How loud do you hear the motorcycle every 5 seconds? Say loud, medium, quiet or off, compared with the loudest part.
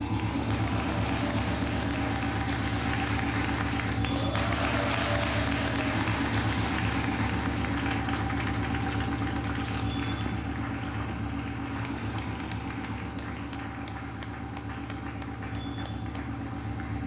loud, loud, medium, medium.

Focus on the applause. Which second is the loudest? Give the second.
5 s.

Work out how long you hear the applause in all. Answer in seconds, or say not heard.
17 s.